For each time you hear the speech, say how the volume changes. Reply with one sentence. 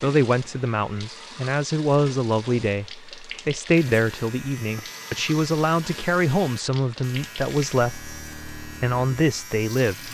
The speech can be heard from 0.0 to 10.0 s, at a steady volume.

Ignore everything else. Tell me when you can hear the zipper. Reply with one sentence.
The zipper can't be heard in this clip.